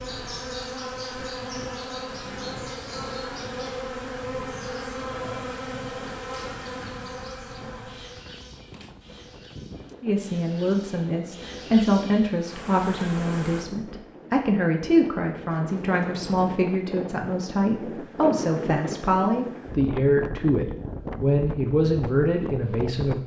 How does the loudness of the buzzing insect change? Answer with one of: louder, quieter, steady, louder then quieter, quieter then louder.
quieter then louder.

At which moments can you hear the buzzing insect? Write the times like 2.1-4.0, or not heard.
0.0-13.7.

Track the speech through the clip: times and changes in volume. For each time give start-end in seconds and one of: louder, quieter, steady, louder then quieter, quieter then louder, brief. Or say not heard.
10.0-23.2 steady.